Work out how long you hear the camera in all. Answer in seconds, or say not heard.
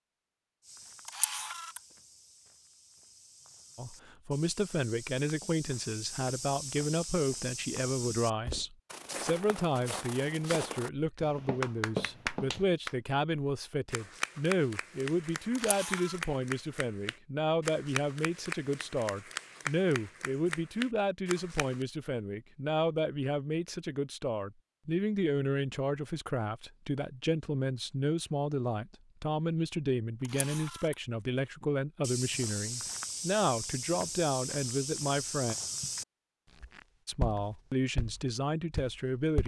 2 s.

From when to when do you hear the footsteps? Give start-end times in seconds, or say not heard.
0.6-12.7, 31.6-39.4.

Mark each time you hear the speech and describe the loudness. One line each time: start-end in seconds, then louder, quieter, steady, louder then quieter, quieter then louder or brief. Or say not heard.
3.8-35.5 steady
37.0-39.4 brief.